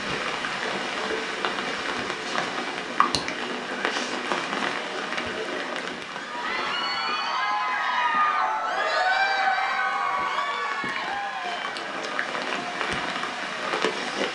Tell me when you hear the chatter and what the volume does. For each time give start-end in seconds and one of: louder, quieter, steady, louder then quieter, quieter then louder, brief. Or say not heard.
0.2-14.2 louder then quieter.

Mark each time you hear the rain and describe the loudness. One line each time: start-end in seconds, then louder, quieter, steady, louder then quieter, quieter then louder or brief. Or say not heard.
0.0-14.2 quieter then louder.